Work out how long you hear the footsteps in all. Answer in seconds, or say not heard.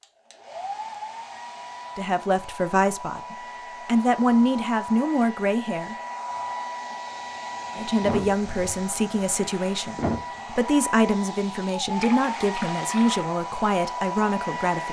not heard.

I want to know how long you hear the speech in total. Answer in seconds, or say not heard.
11 s.